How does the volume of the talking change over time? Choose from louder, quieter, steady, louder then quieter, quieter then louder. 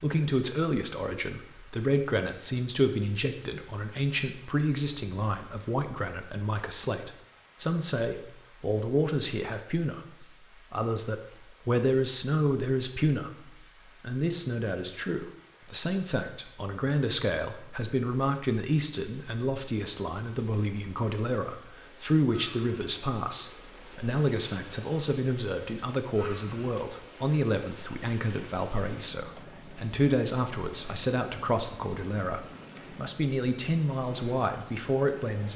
steady.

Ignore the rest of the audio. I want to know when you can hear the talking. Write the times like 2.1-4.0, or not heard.
0.0-35.5.